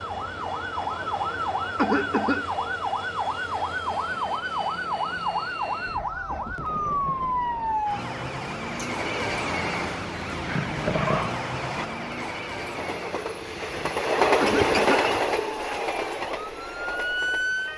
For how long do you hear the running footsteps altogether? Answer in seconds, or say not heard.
not heard.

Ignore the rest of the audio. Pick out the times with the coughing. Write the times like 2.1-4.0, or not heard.
1.8-2.5, 14.4-15.1.